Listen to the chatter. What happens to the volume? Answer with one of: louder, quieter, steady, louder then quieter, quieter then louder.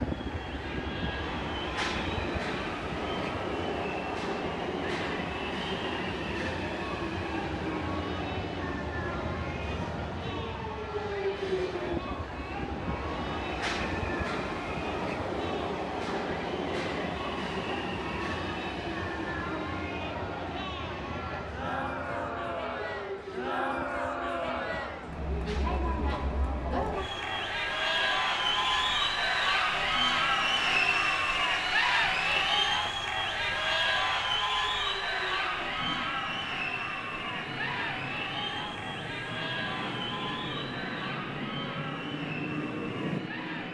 louder then quieter.